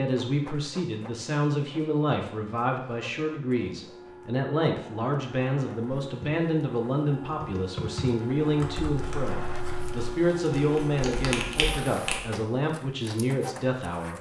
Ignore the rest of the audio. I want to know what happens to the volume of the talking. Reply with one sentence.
The loudness of the talking stays about the same.